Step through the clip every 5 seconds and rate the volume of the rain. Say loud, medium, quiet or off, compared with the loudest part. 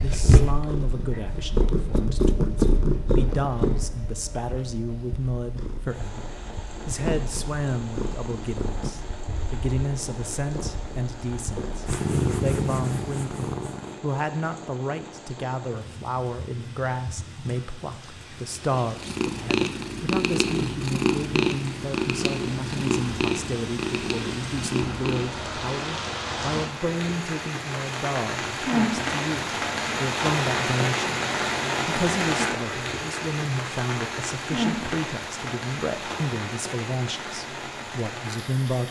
quiet, quiet, quiet, quiet, medium, loud, loud, medium.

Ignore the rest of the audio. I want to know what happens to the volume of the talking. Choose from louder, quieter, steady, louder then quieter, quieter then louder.
steady.